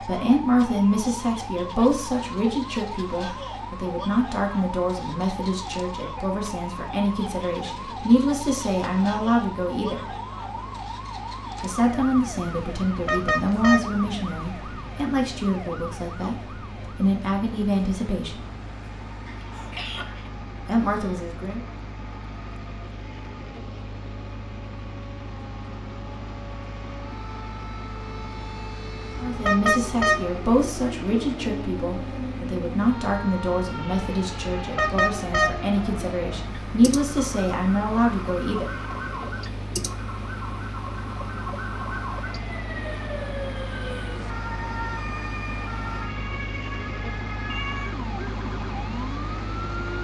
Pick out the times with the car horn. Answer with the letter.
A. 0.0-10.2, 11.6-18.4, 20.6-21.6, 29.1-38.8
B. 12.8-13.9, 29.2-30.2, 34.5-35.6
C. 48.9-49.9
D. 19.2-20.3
B.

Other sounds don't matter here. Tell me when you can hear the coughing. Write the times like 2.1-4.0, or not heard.
19.2-20.3.